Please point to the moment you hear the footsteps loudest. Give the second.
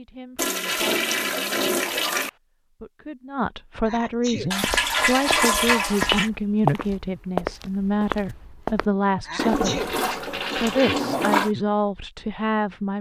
7 s.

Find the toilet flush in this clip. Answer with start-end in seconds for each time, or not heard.
0.3-2.3, 4.5-6.3, 9.3-11.5.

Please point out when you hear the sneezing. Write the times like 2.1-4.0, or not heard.
3.9-4.5, 9.2-9.9.